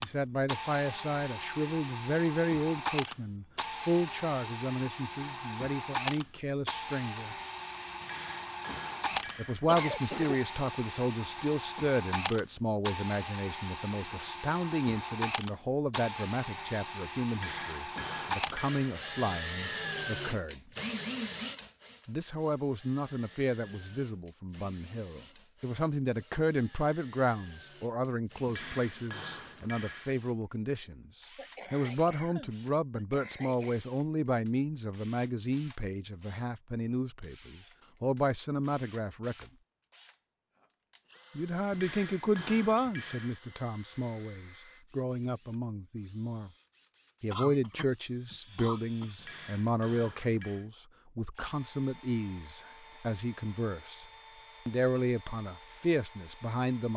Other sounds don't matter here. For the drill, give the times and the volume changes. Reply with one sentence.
You can hear the drill from 0.0 to 49.8 s, getting quieter; and from 51.4 to 56.9 s, at a steady volume.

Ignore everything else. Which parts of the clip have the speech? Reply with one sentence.
The speech can be heard from 0.0 to 7.3 s, from 9.3 to 20.6 s, from 22.1 to 39.5 s, from 41.4 to 46.5 s, from 47.2 to 54.0 s and from 54.6 to 56.9 s.